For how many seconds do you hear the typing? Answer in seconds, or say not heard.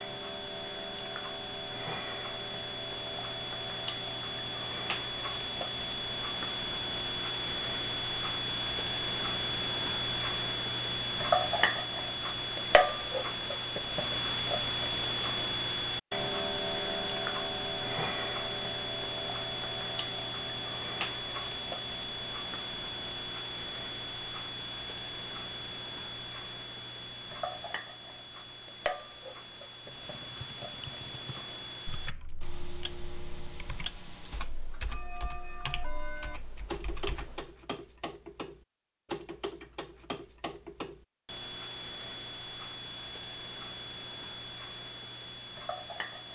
8 s.